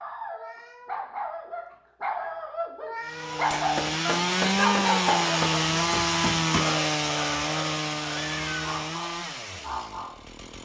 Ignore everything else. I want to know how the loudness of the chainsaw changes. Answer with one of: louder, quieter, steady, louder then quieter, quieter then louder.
quieter.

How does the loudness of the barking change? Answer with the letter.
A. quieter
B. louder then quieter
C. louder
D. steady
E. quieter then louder
B.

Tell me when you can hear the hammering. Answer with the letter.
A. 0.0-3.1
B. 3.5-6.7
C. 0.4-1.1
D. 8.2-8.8
B.